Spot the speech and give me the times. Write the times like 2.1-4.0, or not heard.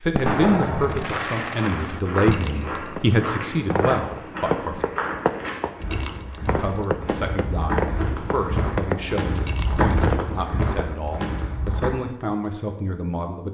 0.0-4.8, 6.5-13.4.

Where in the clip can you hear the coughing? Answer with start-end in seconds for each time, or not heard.
not heard.